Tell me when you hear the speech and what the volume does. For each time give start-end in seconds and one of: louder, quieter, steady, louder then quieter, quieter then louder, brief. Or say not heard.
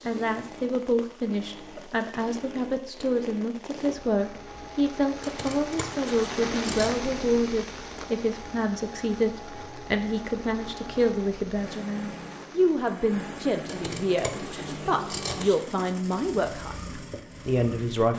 0.1-18.1 steady.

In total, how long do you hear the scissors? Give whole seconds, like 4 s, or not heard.
4 s.